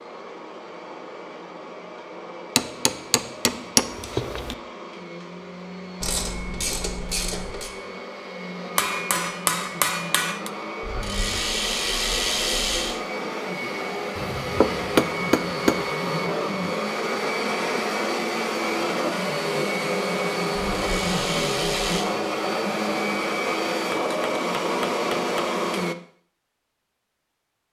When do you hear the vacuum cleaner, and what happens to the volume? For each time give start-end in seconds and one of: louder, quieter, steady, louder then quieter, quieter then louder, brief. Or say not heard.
0.0-25.9 louder.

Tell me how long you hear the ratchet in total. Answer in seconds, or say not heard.
5 s.